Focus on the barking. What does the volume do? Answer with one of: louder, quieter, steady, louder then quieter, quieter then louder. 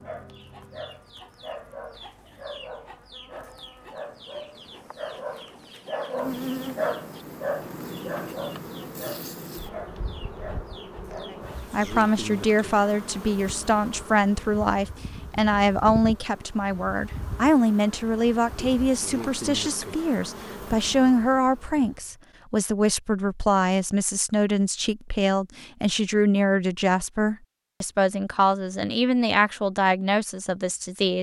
louder then quieter.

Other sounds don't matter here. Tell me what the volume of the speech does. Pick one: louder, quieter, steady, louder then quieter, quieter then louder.
steady.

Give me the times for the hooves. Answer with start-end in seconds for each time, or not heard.
not heard.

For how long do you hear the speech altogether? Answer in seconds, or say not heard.
20 s.